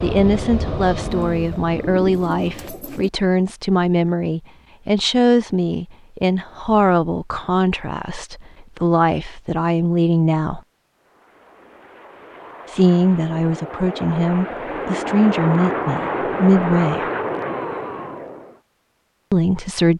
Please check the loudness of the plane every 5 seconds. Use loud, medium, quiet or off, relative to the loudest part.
medium, off, medium, loud.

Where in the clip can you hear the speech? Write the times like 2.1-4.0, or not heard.
0.0-10.6, 12.7-17.1, 19.3-19.9.